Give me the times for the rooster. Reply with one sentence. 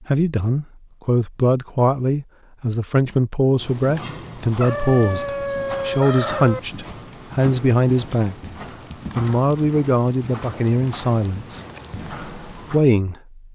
The rooster can be heard from 4.6 to 6.6 s.